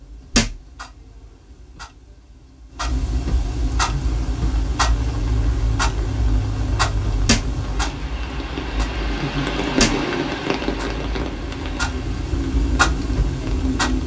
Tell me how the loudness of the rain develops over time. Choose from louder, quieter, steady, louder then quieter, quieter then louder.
louder then quieter.